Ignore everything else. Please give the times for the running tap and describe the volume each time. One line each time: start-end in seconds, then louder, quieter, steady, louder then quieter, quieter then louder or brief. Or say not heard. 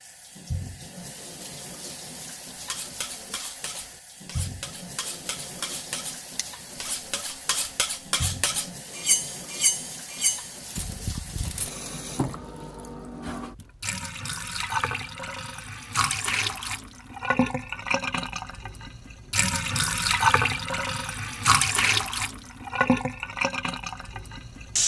0.0-24.8 louder.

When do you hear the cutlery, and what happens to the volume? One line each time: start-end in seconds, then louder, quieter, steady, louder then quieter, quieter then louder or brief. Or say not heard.
2.5-11.7 louder.